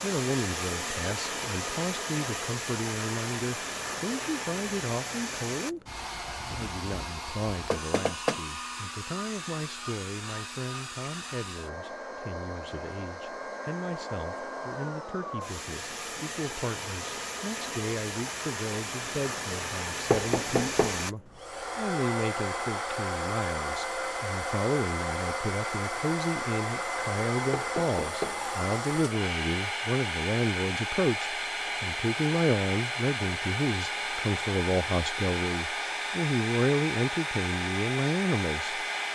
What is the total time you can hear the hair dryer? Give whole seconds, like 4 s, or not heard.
39 s.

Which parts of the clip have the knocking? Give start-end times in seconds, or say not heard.
7.7-8.4, 20.1-21.0, 27.5-28.4.